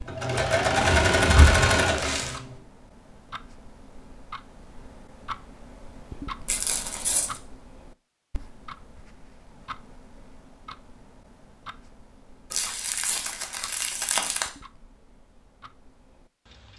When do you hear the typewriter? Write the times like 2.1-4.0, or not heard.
not heard.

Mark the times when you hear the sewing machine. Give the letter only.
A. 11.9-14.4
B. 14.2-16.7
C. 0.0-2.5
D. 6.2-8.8
C.